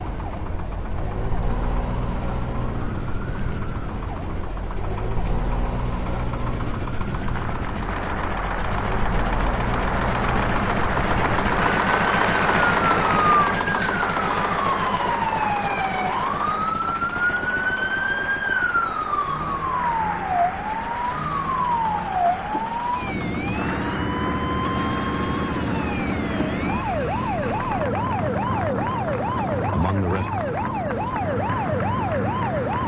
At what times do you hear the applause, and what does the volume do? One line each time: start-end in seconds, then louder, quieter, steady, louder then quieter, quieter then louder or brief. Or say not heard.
7.3-32.8 quieter.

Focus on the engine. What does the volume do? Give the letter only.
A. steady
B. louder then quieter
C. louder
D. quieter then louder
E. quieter
B.